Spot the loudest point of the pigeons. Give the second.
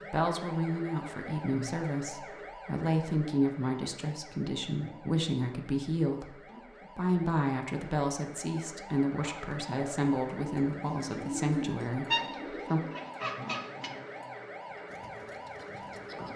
12 s.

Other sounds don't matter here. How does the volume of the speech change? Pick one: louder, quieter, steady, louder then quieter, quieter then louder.
steady.